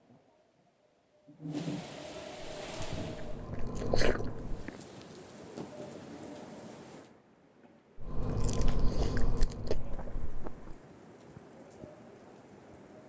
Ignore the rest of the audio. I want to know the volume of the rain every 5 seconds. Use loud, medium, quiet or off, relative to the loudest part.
loud, medium, medium.